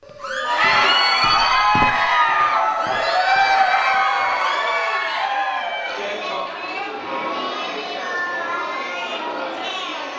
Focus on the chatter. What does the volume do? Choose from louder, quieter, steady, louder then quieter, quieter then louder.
quieter.